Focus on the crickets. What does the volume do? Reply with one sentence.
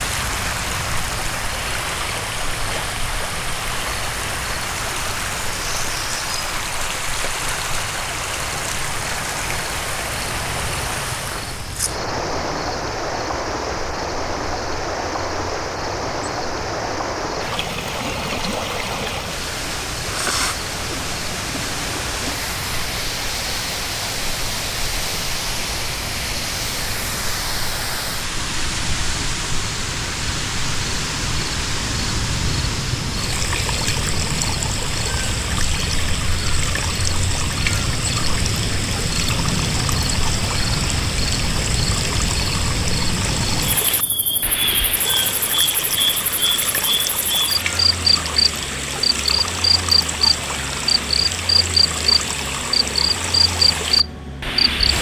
The loudness of the crickets goes up.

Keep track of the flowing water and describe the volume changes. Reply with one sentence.
The volume of the flowing water stays about the same.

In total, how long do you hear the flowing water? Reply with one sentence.
The flowing water can be heard for 55 seconds in total.